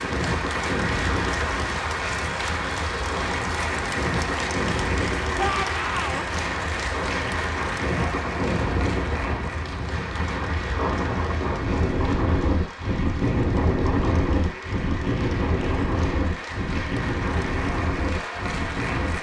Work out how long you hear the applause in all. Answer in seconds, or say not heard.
19 s.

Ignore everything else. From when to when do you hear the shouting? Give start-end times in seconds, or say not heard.
5.3-6.2.